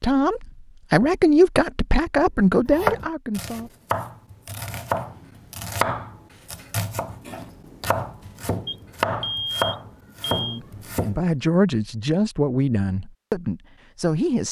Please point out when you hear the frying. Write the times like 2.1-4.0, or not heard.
not heard.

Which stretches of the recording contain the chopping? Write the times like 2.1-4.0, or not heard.
2.6-11.2.